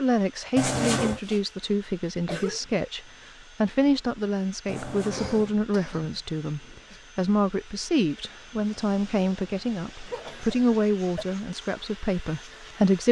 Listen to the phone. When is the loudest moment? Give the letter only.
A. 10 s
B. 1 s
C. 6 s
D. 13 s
B.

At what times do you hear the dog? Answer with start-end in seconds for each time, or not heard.
not heard.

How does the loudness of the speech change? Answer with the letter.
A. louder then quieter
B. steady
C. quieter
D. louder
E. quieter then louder
B.